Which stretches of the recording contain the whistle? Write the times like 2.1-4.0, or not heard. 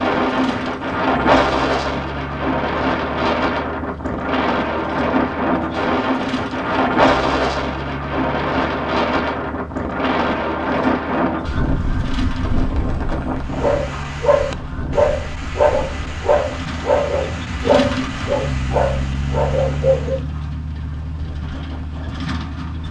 not heard.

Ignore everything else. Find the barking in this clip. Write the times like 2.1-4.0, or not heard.
13.5-20.2.